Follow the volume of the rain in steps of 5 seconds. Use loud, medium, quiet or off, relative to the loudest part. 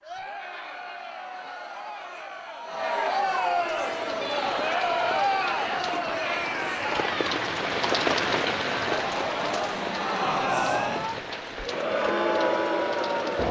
medium, loud, medium.